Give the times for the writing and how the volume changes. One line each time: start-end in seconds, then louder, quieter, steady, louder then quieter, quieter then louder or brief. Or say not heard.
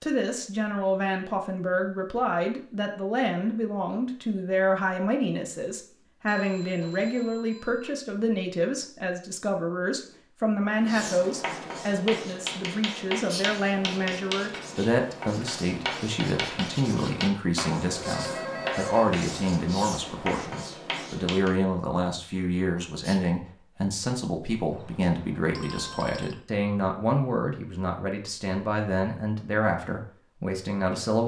10.8-21.6 steady.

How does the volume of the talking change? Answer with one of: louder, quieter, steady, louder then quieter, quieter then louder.
steady.